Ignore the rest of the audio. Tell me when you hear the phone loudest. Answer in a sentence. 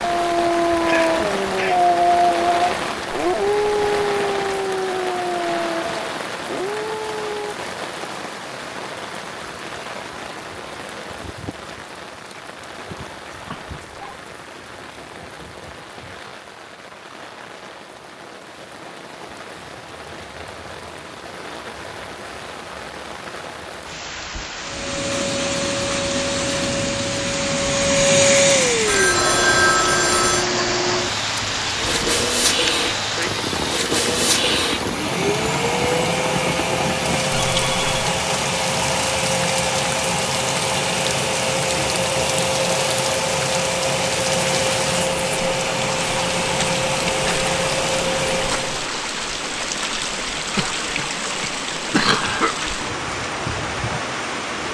The volume of the phone peaks at 30 seconds.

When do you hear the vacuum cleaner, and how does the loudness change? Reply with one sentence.
The vacuum cleaner can be heard from 24.6 to 48.9 s, at a steady volume.